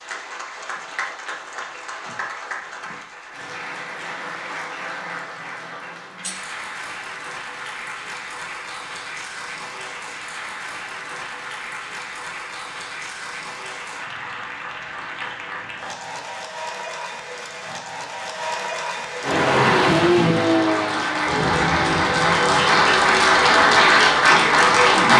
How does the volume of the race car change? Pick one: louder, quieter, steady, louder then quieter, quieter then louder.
quieter.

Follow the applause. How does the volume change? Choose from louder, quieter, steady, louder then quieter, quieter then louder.
louder.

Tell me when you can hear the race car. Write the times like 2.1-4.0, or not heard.
19.2-25.1.